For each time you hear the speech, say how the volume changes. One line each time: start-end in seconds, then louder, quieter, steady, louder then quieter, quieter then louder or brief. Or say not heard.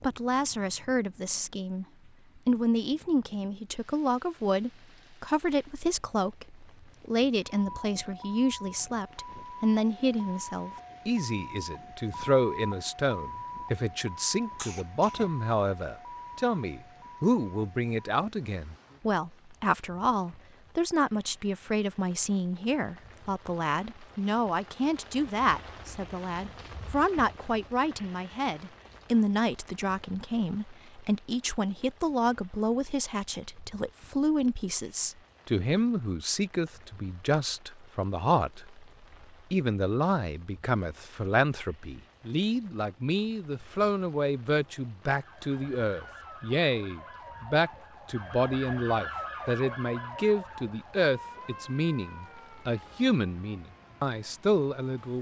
0.0-1.9 brief
2.5-38.9 steady
39.5-55.1 steady.